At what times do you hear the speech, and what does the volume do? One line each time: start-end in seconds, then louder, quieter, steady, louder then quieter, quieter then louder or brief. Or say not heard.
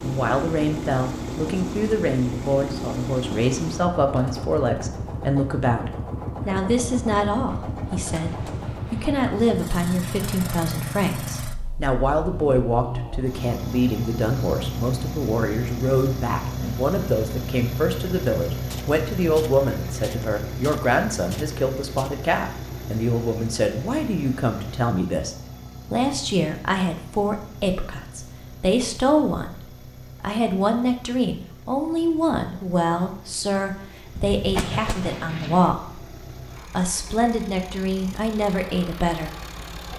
0.0-29.6 steady
30.2-39.3 steady.